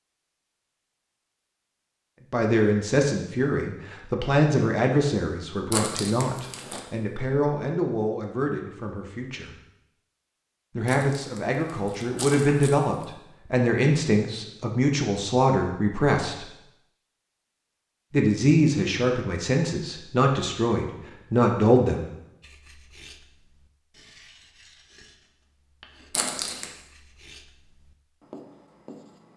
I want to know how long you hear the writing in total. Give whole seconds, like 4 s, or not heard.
7 s.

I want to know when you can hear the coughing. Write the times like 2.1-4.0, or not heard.
not heard.